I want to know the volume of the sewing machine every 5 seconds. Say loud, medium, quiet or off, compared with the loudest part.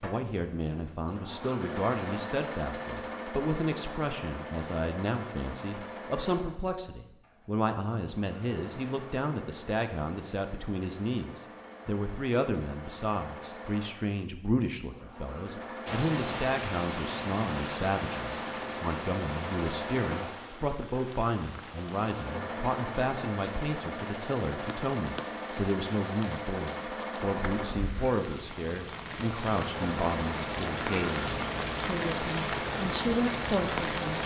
loud, medium, medium, loud, loud, loud, loud.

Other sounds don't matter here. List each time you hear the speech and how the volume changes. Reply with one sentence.
You can hear the speech from 0.0 to 34.2 s, at a steady volume.